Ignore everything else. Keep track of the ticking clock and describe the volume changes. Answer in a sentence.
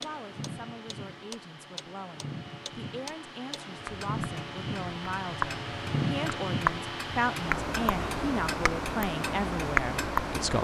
The loudness of the ticking clock goes up.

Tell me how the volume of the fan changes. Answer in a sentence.
The volume of the fan goes up.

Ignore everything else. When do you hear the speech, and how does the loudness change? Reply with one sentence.
You can hear the speech from 0.0 to 10.5 s, getting louder.